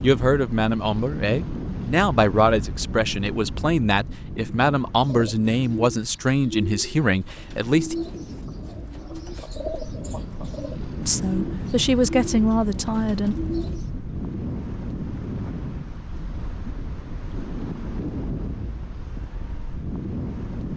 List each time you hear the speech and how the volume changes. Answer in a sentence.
The speech can be heard from 0.0 to 8.0 s, at a steady volume; and briefly from 11.1 to 13.3 s.